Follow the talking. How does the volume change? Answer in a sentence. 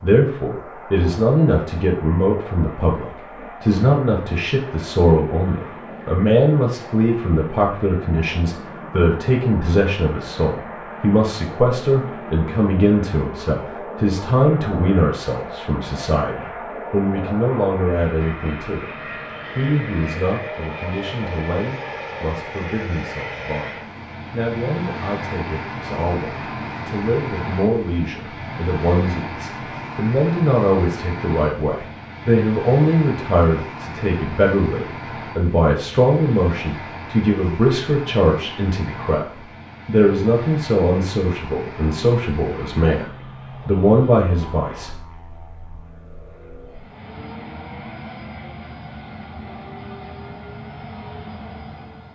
The loudness of the talking goes down, then up.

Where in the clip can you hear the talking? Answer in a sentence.
The talking can be heard from 0.0 to 44.9 s.